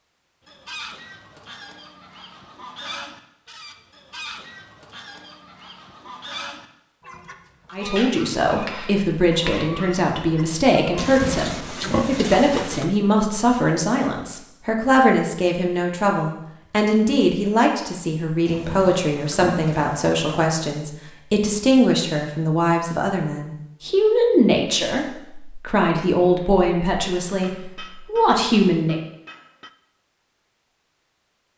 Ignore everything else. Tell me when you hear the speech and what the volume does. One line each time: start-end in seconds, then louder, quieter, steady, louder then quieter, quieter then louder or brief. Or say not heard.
7.7-29.0 steady.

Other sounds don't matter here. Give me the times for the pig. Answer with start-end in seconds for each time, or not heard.
10.9-12.8, 18.4-20.4.